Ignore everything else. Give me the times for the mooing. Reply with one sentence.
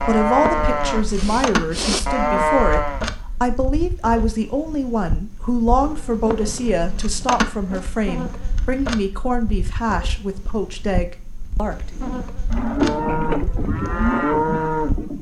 You can hear the mooing from 0.0 to 3.0 s and from 11.9 to 15.1 s.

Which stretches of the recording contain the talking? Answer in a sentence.
The talking can be heard from 0.1 to 11.9 s.